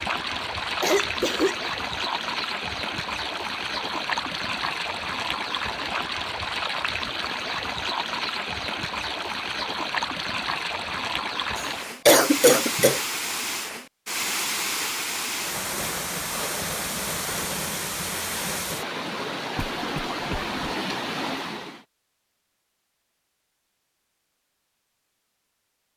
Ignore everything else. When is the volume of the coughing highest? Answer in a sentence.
The loudest moment of the coughing is at 12 seconds.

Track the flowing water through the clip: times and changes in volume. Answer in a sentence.
You can hear the flowing water from 0.0 to 21.9 s, at a steady volume.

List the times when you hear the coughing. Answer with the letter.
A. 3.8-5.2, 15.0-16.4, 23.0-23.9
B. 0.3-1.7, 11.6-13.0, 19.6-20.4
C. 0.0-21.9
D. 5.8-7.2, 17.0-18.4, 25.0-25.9
B.